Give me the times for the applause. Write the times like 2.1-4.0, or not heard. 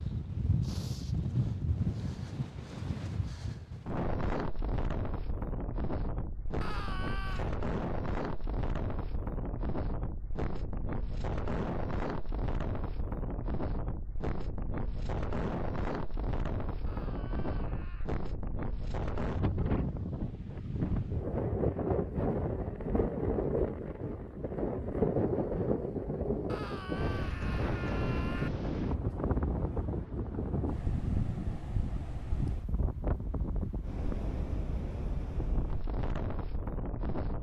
not heard.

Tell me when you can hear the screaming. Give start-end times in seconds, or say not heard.
6.6-7.5, 16.9-18.1, 26.4-28.5.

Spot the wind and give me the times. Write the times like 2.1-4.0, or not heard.
0.0-37.3.